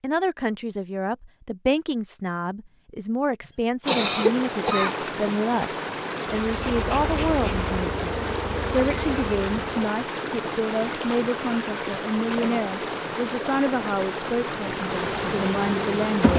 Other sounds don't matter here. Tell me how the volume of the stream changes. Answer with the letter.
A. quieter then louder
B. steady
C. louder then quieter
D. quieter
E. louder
B.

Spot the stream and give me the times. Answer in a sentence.
You can hear the stream from 3.8 to 16.3 s.